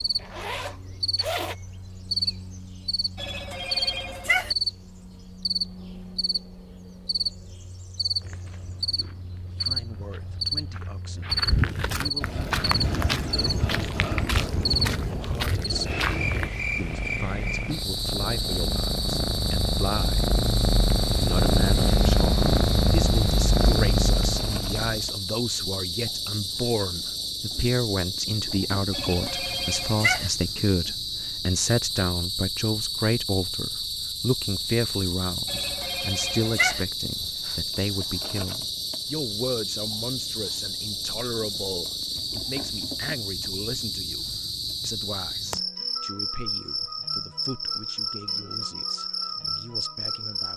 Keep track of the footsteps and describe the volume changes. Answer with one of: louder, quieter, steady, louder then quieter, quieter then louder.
louder.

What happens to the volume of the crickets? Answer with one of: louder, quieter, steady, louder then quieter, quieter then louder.
steady.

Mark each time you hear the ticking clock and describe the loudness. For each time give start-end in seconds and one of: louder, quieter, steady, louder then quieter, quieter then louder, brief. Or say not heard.
not heard.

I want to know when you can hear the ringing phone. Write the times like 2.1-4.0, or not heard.
3.1-4.5, 28.9-30.3, 35.5-36.9.